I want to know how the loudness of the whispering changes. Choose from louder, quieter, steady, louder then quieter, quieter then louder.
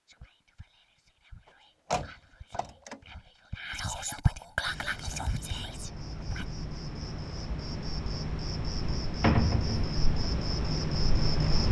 louder then quieter.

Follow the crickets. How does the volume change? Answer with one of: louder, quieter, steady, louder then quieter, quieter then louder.
louder.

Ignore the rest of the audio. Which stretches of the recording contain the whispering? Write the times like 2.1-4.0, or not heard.
0.1-6.5.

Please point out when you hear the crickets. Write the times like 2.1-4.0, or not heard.
4.7-11.6.